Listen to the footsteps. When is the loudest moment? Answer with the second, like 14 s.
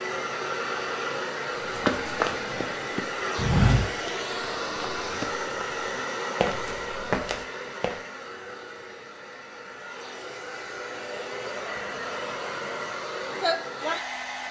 4 s.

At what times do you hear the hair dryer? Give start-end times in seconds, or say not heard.
0.0-14.4.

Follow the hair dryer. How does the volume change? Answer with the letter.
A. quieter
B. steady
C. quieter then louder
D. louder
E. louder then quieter
C.